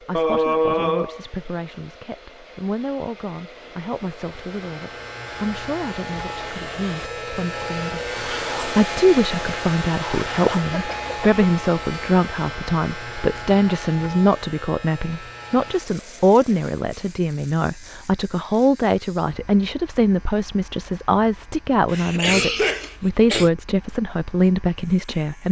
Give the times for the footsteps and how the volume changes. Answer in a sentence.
The footsteps can't be heard in this clip.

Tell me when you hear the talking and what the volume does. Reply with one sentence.
You can hear the talking from 0.0 to 25.4 s, getting louder.